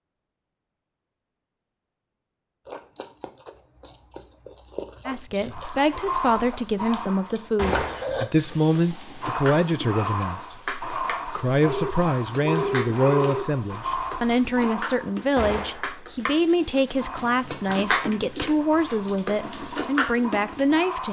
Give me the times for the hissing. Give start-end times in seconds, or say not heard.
5.4-21.0.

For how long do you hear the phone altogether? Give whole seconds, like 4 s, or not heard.
2 s.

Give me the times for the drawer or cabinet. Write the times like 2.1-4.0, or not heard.
not heard.